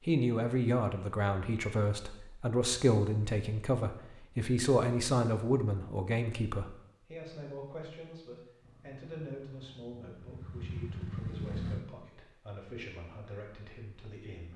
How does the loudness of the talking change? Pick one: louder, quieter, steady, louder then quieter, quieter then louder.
quieter.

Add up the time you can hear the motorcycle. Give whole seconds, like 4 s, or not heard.
3 s.